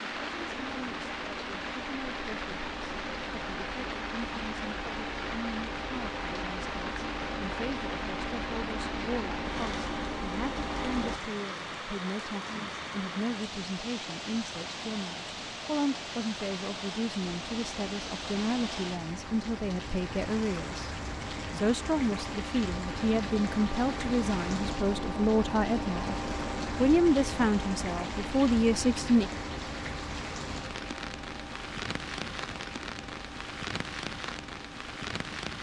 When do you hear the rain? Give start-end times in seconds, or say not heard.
0.0-35.5.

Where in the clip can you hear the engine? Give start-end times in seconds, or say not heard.
0.2-11.2, 17.2-35.5.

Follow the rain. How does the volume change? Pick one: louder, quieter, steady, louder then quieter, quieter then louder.
steady.